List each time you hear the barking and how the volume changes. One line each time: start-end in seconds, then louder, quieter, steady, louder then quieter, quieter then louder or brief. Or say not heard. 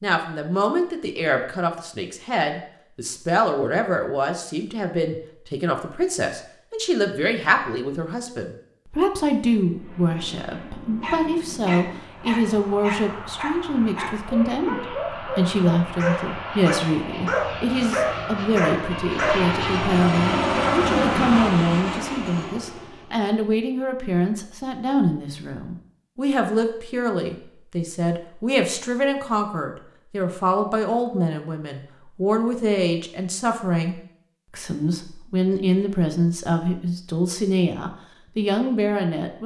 11.0-19.4 louder.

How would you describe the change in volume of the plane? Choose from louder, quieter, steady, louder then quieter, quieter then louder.
louder.